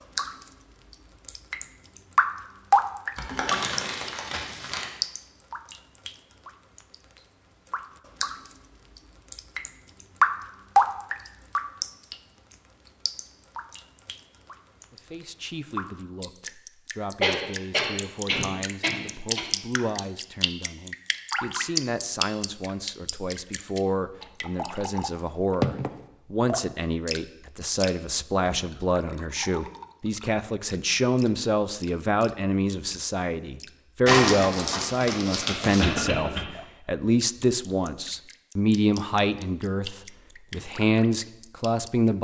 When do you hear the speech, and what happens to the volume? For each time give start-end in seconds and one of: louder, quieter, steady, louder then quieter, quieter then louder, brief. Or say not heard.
14.9-42.2 louder.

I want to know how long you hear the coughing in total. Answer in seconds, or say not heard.
3 s.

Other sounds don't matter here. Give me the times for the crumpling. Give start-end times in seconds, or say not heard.
3.1-4.8, 34.0-35.9.